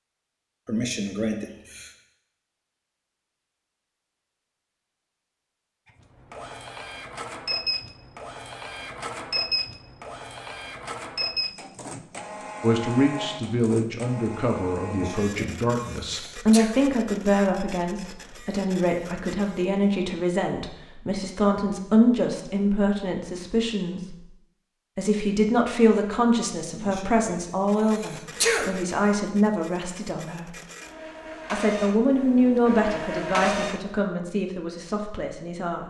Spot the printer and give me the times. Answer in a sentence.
You can hear the printer from 5.8 to 19.9 s and from 27.6 to 34.0 s.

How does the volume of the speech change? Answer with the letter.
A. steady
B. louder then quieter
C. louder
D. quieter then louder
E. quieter
A.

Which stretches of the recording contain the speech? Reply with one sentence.
You can hear the speech from 12.6 to 24.2 s, from 24.9 to 30.6 s and from 31.5 to 35.8 s.